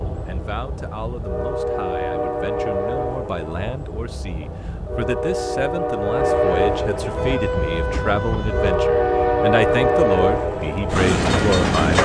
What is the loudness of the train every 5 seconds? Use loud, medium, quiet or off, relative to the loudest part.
medium, loud, loud.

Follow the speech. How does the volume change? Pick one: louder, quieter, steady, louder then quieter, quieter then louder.
louder.